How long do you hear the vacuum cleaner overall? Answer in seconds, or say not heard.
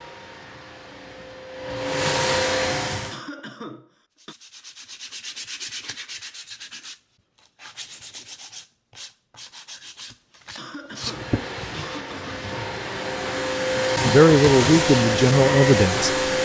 9 s.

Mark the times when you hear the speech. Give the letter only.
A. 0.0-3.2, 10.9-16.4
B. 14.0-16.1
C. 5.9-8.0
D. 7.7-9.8
B.